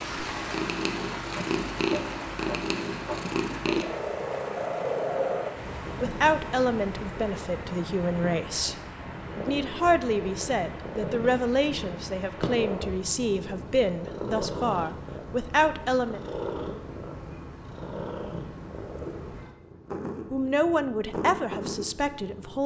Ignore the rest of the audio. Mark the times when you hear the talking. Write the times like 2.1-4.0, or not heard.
6.0-8.8, 9.3-16.2, 20.3-22.6.